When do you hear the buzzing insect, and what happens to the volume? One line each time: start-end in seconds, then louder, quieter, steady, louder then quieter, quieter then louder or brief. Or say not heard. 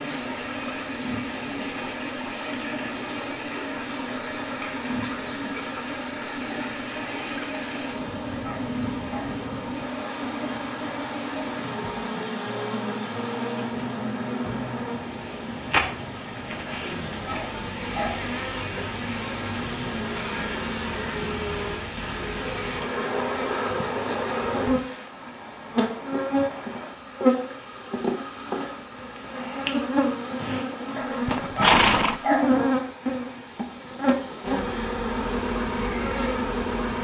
0.0-37.0 louder.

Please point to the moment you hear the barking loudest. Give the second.
32 s.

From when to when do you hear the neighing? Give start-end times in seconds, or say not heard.
31.2-32.2.